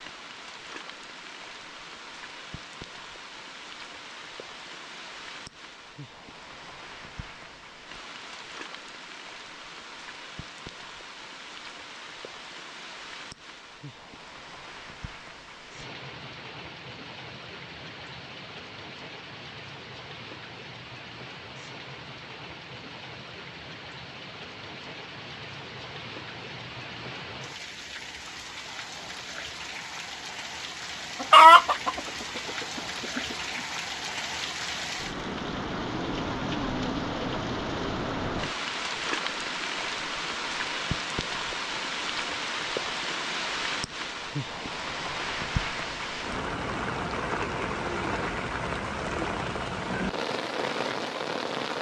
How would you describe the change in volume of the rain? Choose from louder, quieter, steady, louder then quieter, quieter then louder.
louder.